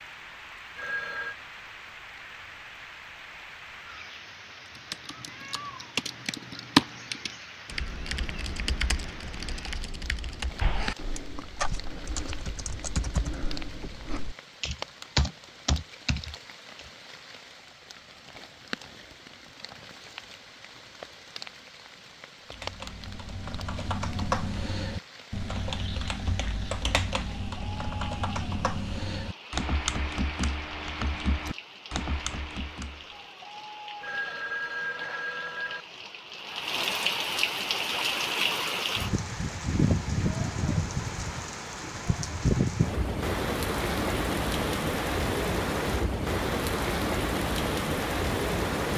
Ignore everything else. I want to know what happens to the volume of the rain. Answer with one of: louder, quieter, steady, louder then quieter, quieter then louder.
louder.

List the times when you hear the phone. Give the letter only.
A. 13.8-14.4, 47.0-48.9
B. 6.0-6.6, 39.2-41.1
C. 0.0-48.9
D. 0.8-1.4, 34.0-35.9
D.